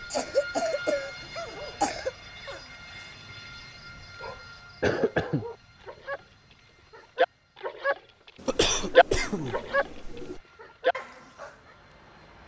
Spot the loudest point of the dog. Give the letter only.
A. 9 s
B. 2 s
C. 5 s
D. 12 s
A.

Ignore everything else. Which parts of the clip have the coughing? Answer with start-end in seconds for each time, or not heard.
0.1-2.1, 4.8-5.5, 8.4-10.4.